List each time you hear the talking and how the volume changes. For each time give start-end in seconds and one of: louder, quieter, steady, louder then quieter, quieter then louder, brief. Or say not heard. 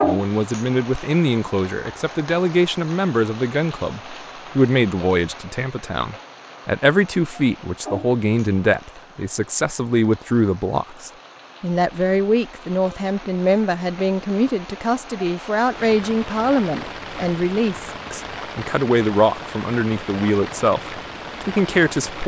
0.0-22.2 steady.